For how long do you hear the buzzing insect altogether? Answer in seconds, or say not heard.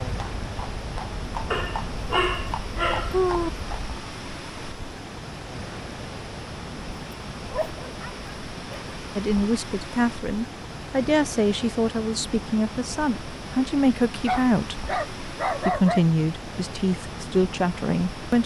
not heard.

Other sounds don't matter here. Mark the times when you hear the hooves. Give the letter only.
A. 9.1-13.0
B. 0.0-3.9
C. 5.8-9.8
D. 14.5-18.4
B.